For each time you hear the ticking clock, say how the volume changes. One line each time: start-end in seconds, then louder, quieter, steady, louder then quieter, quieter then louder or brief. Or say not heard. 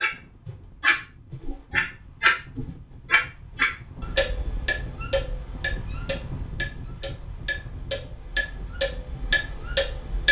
0.0-10.2 quieter then louder.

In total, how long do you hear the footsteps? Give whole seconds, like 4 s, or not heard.
not heard.